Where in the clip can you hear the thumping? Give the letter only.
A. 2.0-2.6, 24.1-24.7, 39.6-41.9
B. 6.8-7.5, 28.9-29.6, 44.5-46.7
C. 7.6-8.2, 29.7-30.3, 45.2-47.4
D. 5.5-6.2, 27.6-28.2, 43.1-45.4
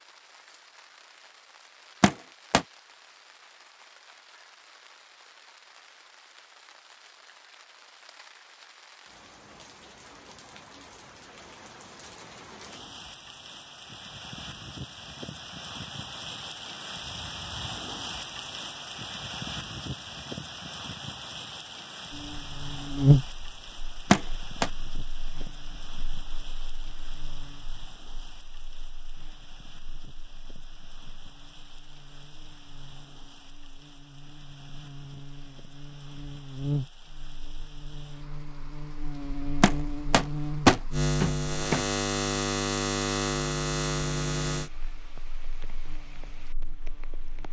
A.